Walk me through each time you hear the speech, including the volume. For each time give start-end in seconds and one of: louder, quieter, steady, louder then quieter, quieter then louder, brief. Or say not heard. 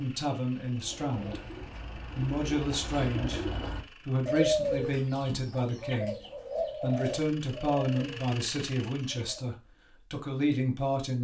0.0-1.5 brief
2.1-11.2 steady.